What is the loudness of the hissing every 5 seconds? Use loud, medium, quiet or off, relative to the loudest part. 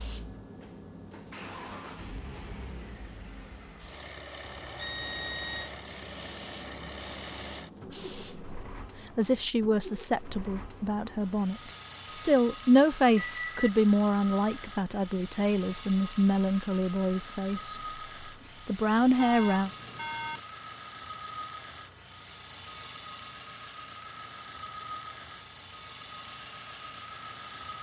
loud, loud, off, off, off, loud.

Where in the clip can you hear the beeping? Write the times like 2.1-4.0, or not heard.
4.4-5.7, 13.2-13.7, 19.1-20.4.